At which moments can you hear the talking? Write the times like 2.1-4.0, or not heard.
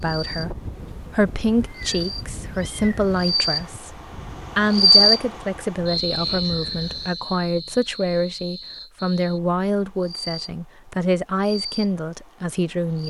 0.0-13.0.